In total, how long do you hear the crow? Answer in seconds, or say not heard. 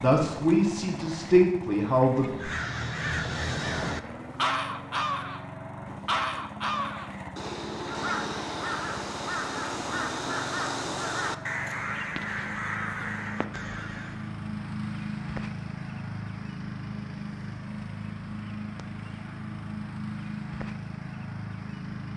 12 s.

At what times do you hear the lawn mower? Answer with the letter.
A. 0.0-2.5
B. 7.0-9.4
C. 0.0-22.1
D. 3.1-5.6
C.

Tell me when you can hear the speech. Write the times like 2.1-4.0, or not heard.
0.0-2.5.